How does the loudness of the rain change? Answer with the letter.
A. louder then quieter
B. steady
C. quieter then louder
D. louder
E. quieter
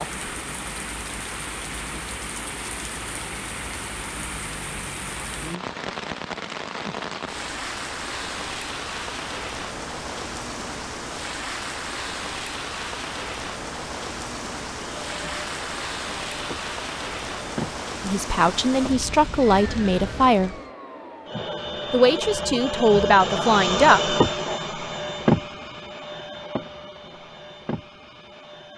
B.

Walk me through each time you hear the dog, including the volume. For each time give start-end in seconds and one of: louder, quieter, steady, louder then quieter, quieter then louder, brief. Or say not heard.
not heard.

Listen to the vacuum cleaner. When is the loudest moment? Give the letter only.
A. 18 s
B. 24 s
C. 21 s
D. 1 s
B.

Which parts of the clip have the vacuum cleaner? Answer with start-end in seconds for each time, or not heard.
14.8-28.7.